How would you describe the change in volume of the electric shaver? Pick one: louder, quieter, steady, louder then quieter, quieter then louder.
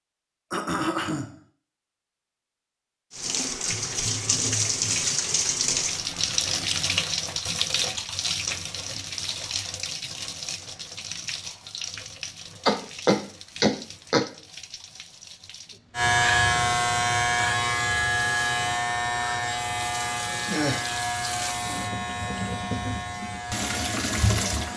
quieter.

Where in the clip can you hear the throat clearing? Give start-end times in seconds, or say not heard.
0.5-1.4, 12.7-14.2, 20.4-20.9.